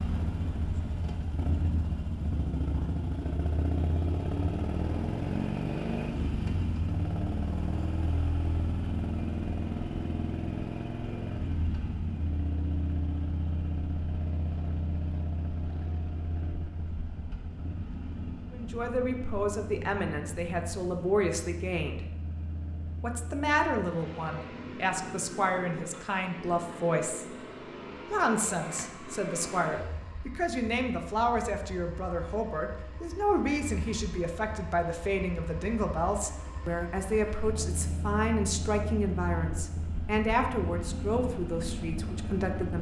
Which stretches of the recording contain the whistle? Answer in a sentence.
The whistle can't be heard in this clip.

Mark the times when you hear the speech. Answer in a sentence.
You can hear the speech from 18.5 to 22.0 s, from 23.0 to 27.2 s and from 28.1 to 42.7 s.